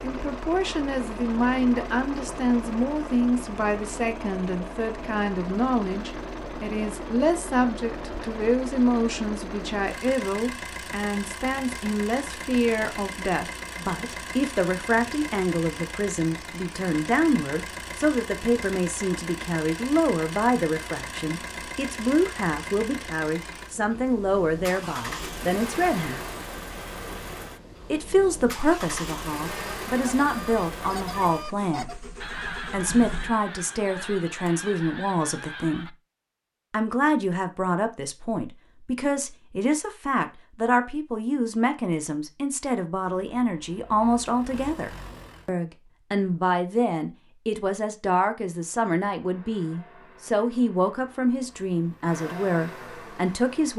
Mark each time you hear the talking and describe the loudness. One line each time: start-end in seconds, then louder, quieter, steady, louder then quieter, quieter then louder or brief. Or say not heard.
0.0-26.2 steady
27.9-36.0 steady
36.7-53.7 steady.